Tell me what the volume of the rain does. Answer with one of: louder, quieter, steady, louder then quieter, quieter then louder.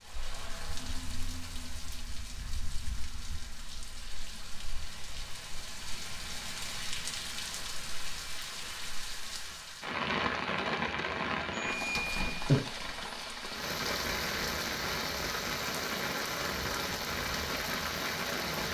louder.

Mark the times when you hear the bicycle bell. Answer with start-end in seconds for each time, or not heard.
11.5-12.6.